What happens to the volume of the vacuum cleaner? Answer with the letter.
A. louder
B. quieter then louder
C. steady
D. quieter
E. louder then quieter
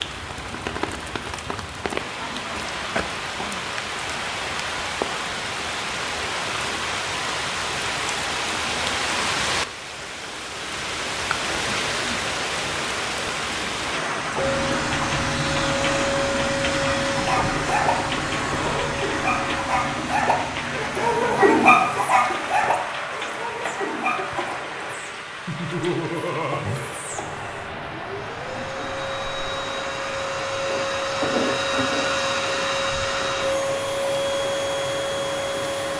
B.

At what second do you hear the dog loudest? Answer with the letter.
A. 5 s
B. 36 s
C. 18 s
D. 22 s
D.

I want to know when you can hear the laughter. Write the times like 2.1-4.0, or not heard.
25.4-26.6.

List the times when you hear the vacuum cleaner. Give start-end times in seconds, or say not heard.
14.3-35.9.